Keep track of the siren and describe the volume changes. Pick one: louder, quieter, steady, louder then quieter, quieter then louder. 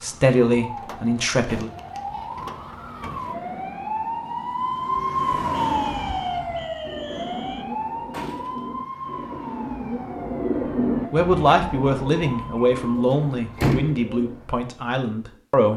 louder then quieter.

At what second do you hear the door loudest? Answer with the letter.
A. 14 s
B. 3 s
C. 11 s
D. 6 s
A.